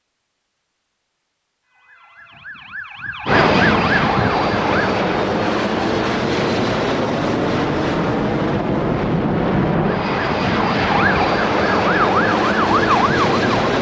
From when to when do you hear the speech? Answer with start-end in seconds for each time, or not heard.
not heard.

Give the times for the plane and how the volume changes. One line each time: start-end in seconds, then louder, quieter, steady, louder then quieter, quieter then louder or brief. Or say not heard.
3.2-13.7 steady.